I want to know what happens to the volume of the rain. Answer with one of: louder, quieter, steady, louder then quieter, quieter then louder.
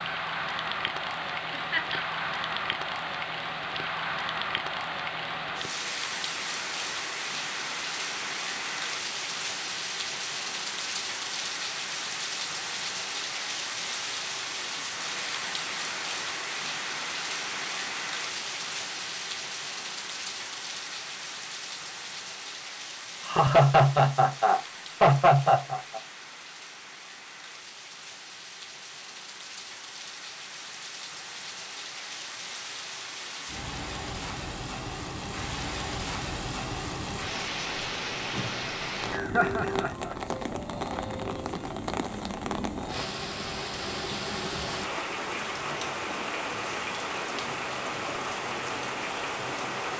quieter then louder.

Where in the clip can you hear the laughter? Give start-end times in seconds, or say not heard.
1.5-2.0, 23.2-26.0, 39.1-40.1.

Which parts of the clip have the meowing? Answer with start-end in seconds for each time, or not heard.
not heard.